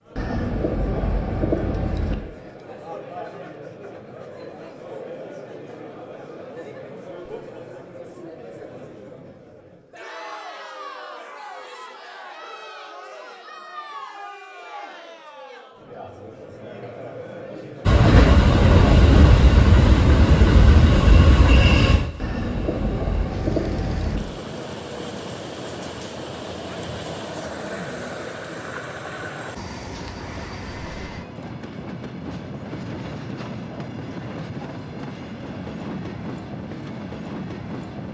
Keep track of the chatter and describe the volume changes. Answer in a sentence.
The volume of the chatter stays about the same.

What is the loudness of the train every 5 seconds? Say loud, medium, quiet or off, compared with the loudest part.
off, off, off, loud, medium, quiet, quiet, quiet.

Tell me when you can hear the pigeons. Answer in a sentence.
You can hear the pigeons from 0.1 to 2.1 s and from 22.1 to 24.2 s.